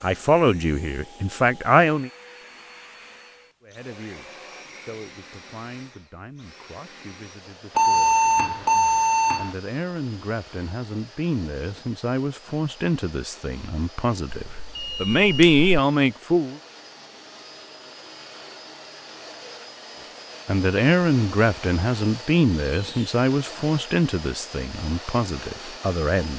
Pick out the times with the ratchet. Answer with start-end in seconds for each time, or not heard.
not heard.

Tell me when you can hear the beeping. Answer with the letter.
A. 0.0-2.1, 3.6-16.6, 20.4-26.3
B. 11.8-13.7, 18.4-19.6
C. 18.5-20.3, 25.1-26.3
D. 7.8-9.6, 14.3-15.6
D.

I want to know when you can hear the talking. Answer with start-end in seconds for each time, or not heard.
0.0-2.1, 3.6-16.6, 20.4-26.3.